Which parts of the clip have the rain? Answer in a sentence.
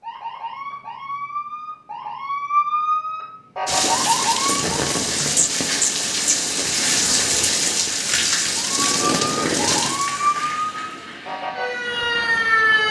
The rain can be heard from 3.6 to 12.8 s.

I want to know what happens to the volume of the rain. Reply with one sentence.
The loudness of the rain goes down.